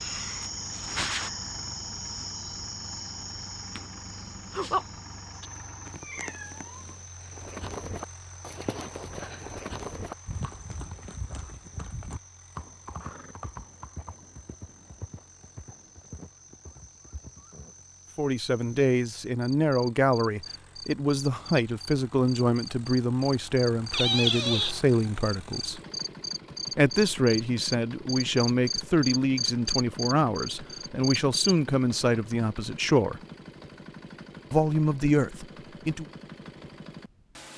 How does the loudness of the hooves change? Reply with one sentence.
The loudness of the hooves goes down.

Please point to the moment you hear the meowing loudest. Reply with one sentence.
The volume of the meowing peaks at 24 seconds.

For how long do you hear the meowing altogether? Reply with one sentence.
You can hear the meowing for 2 seconds altogether.